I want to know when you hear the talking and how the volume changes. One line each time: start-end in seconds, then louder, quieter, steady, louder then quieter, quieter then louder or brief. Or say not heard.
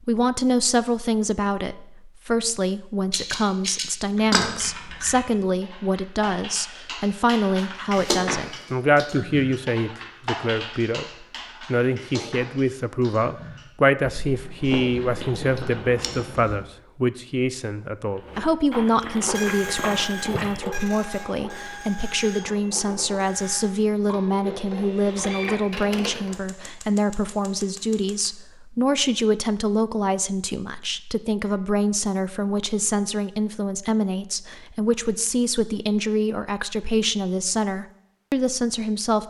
0.0-39.2 steady.